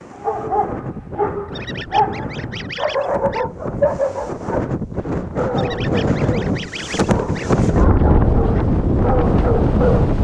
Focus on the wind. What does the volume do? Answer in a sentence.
The loudness of the wind goes up.